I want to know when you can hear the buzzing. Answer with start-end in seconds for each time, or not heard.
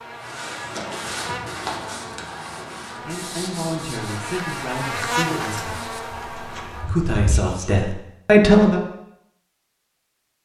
0.0-6.9.